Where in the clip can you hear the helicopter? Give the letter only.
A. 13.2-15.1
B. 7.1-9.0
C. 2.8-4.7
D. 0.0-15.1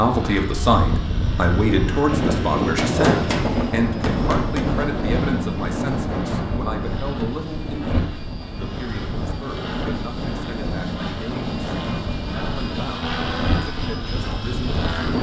D.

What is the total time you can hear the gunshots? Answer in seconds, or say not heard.
2 s.